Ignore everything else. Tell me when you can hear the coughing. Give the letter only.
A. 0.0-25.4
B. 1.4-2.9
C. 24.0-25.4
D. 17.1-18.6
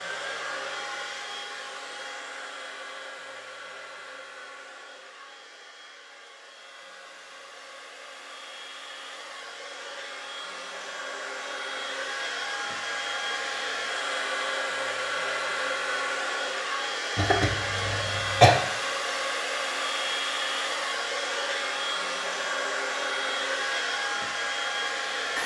D.